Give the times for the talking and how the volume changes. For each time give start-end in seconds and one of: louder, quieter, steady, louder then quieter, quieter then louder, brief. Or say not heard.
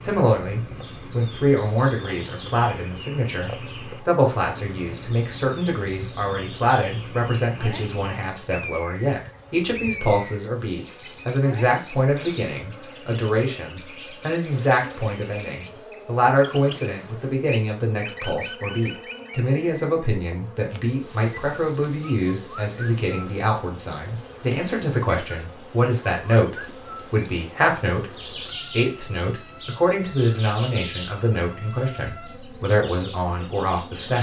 0.0-34.1 steady.